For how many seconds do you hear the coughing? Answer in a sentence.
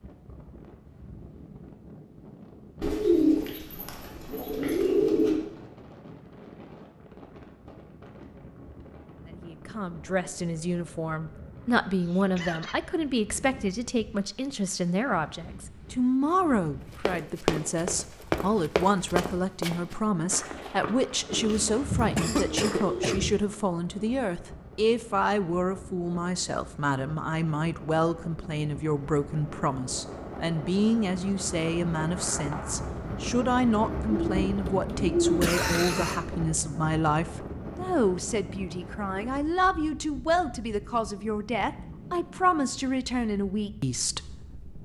The coughing can be heard for 3 seconds in total.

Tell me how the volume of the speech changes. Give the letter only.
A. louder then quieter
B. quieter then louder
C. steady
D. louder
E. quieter
C.